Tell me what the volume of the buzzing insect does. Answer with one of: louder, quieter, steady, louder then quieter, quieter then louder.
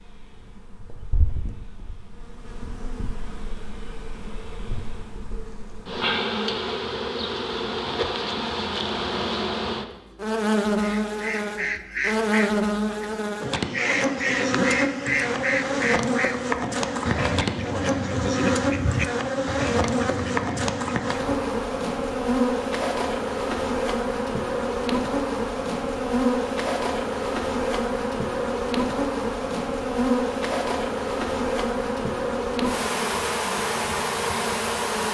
louder.